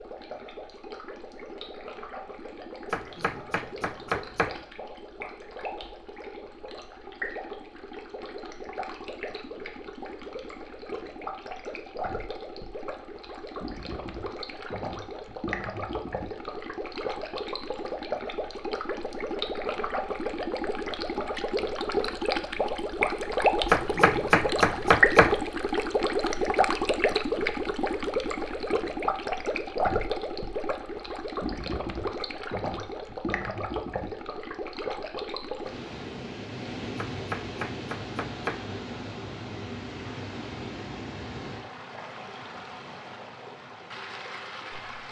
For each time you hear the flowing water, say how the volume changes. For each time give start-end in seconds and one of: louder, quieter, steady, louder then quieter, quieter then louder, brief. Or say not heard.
0.0-45.0 louder then quieter.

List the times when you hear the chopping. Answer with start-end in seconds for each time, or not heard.
2.9-4.5, 23.7-25.4, 37.0-38.6.